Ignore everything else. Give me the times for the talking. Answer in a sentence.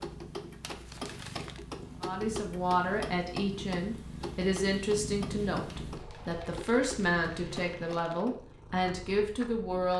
You can hear the talking from 2.0 to 9.9 s.